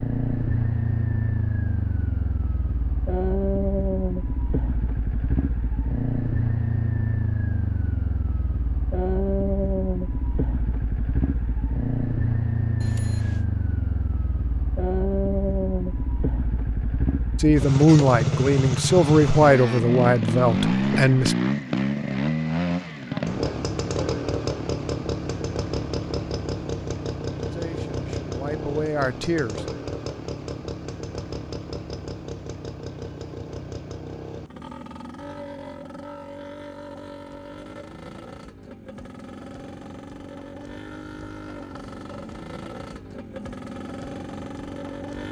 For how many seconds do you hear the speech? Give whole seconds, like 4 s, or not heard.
6 s.